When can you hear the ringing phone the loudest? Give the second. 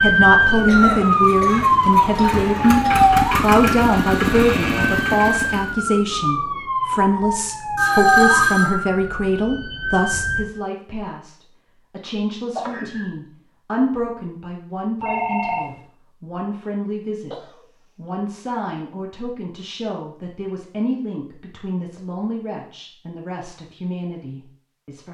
8 s.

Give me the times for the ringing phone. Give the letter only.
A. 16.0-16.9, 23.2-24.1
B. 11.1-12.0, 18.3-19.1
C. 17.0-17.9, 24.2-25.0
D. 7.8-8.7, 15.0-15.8
D.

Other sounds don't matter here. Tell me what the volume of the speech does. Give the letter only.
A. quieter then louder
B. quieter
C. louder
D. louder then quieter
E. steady
B.